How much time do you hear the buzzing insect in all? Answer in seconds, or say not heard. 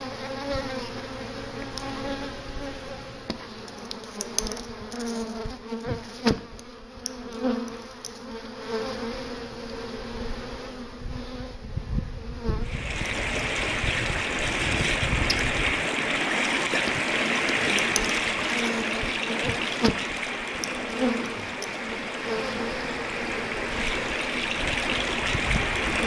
26 s.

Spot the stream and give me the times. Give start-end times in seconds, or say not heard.
12.6-26.0.